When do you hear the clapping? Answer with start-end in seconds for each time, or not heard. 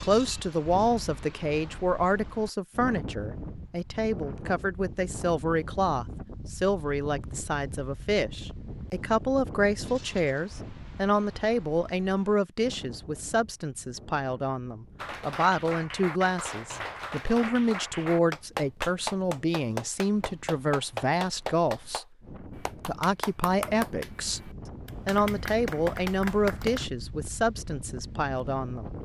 14.9-26.9.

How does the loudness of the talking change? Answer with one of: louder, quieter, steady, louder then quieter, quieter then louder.
steady.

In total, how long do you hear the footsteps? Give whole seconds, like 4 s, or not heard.
not heard.